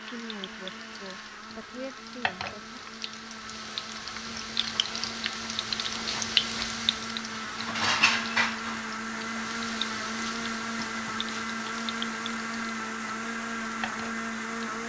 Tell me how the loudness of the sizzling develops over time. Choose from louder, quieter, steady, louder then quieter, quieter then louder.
louder then quieter.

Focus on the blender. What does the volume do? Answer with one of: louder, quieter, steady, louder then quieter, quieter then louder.
louder.